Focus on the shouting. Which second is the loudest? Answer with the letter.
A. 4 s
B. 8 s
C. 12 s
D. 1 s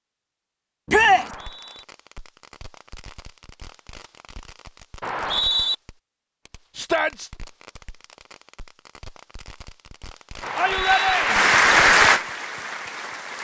D.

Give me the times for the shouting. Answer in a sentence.
You can hear the shouting from 0.8 to 1.3 s, from 6.8 to 7.3 s and from 10.6 to 11.6 s.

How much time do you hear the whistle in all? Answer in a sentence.
You can hear the whistle for 2 seconds altogether.